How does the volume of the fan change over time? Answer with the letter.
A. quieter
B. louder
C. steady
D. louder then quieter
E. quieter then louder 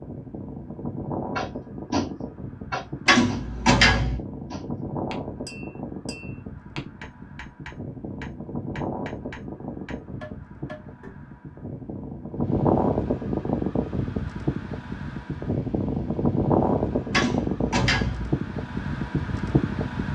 B.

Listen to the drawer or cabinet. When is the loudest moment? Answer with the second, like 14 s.
4 s.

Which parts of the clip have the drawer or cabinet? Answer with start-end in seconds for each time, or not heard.
3.0-4.2, 17.1-18.4.